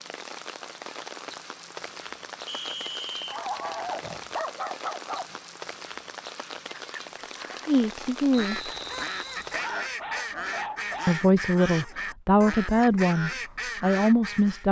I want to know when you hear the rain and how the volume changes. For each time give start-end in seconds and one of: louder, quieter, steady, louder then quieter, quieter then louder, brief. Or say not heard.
0.0-9.9 steady.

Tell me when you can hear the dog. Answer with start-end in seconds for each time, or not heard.
3.2-5.4, 9.5-11.2.